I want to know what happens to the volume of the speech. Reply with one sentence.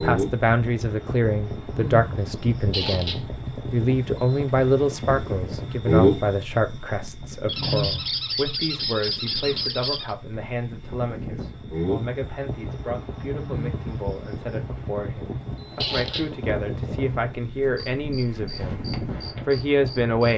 The volume of the speech goes down, then up.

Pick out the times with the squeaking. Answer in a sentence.
You can hear the squeaking from 2.7 to 3.2 s, from 7.5 to 10.2 s and from 15.8 to 16.3 s.